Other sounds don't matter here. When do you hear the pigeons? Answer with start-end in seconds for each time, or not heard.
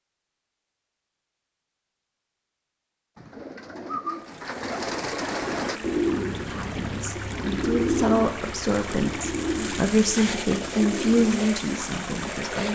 3.1-11.6.